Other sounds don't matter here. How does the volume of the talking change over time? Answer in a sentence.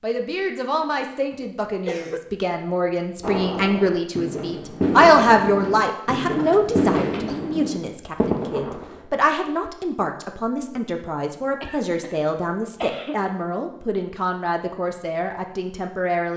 The loudness of the talking goes up, then down.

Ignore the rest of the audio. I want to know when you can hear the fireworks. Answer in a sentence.
The fireworks can be heard from 3.2 to 9.0 s.